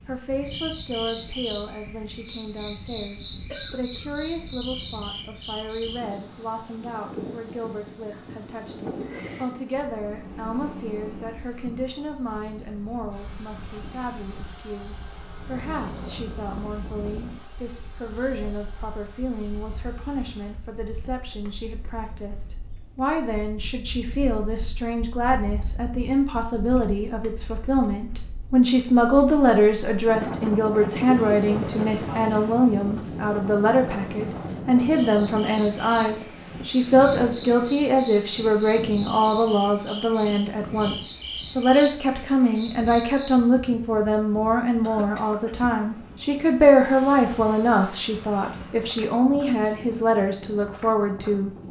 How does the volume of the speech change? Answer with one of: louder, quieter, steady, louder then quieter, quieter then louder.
louder.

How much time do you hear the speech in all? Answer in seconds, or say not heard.
51 s.